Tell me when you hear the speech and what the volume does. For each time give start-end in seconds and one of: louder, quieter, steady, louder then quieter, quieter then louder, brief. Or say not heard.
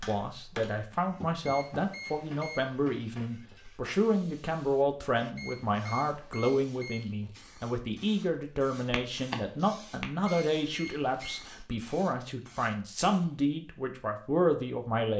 0.0-15.1 steady.